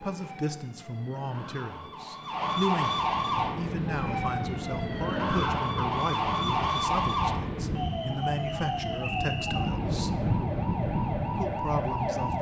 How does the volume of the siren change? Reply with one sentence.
The volume of the siren goes up, then down.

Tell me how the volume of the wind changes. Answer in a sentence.
The loudness of the wind goes up.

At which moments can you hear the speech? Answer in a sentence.
The speech can be heard from 0.0 to 10.2 s and from 11.3 to 12.3 s.